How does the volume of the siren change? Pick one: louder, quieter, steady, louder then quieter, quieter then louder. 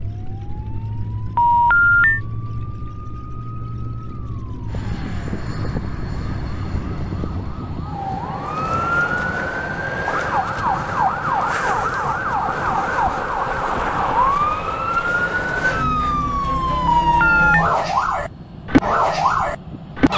louder.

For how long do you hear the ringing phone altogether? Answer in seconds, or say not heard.
2 s.